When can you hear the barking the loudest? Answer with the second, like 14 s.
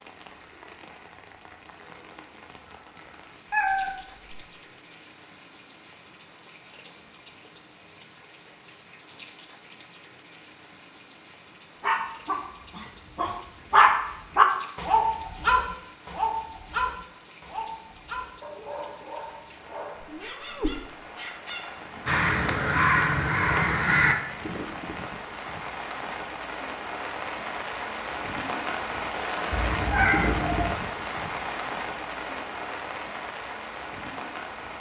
14 s.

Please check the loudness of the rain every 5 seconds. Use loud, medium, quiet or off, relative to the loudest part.
quiet, quiet, quiet, quiet, medium, loud, loud.